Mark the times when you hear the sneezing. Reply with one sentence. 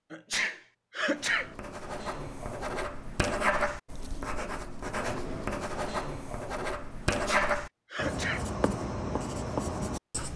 The sneezing can be heard from 0.1 to 1.4 s and from 7.0 to 8.4 s.